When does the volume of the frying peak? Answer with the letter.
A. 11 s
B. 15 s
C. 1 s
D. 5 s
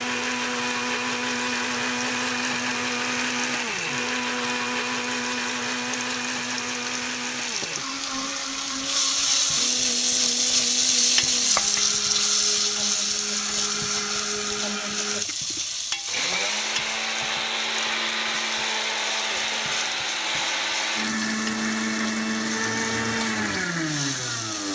A.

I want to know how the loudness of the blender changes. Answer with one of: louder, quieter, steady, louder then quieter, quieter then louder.
quieter then louder.